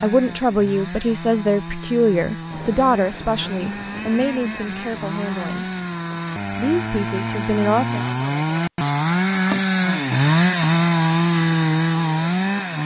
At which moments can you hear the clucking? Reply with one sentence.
The clucking can't be heard in this clip.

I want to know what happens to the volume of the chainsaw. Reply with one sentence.
The volume of the chainsaw goes up.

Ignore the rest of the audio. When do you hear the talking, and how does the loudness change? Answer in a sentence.
The talking can be heard from 0.0 to 5.7 s, getting quieter; and briefly from 6.5 to 8.1 s.